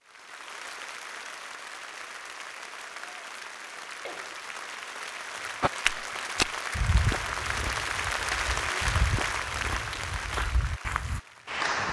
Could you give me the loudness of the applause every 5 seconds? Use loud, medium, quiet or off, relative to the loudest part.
medium, loud, loud.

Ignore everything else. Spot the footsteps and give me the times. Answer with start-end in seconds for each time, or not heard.
5.6-11.2.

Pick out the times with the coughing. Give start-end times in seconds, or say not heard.
3.6-4.3.